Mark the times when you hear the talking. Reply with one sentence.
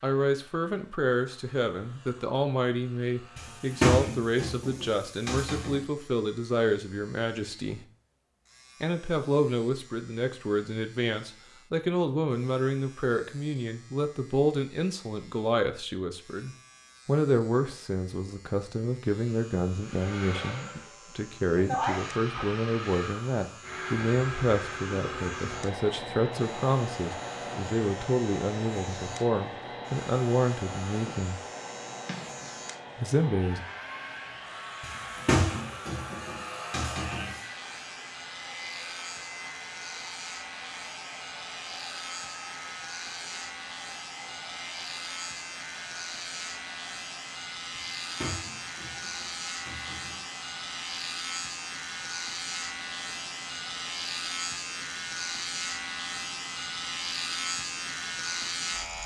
You can hear the talking from 0.0 to 7.8 s, from 8.8 to 31.4 s and from 33.0 to 33.6 s.